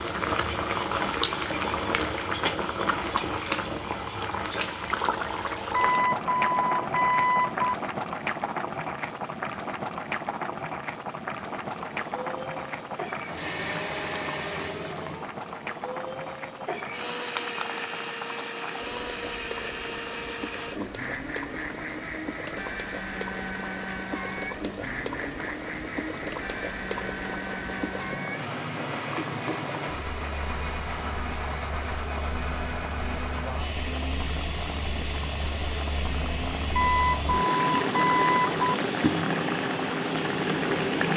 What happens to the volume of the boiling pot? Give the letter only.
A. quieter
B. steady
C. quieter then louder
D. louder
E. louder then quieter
C.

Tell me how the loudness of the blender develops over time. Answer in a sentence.
The volume of the blender stays about the same.